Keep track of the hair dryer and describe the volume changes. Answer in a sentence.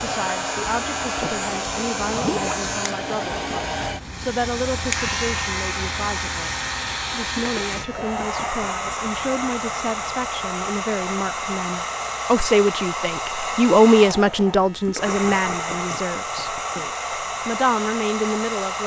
The loudness of the hair dryer stays about the same.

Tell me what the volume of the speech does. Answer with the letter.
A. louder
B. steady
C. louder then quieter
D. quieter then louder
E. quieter
C.